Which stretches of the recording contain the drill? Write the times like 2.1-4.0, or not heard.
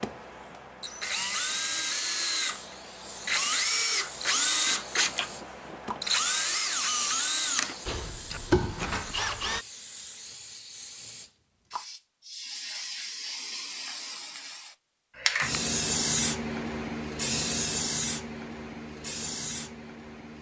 0.0-9.7.